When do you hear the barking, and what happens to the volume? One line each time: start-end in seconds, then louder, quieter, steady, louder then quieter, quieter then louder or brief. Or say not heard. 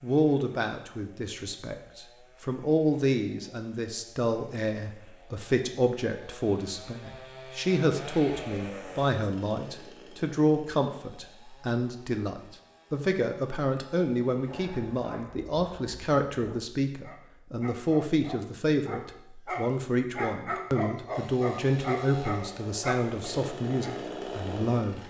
14.3-23.9 louder.